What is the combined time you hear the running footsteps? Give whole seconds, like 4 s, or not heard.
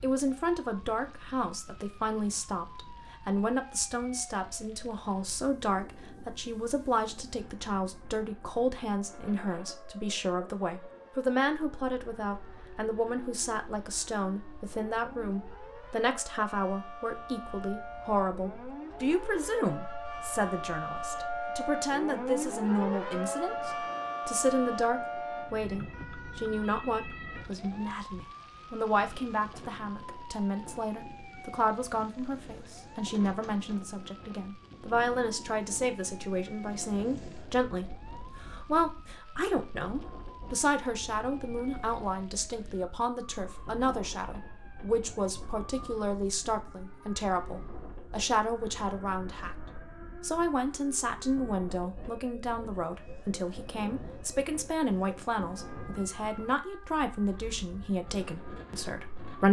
not heard.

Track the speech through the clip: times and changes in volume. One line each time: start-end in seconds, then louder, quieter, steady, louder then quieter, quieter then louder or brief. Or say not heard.
0.0-59.4 steady.